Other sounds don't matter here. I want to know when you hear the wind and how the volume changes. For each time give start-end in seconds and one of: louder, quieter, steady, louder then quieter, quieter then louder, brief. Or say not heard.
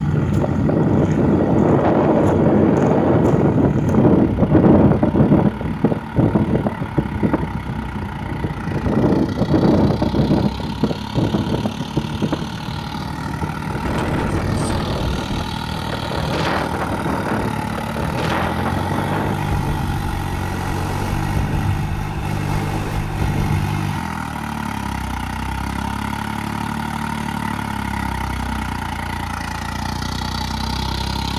0.0-23.6 quieter.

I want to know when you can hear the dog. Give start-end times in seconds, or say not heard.
not heard.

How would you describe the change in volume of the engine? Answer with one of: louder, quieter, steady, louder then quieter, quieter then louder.
louder.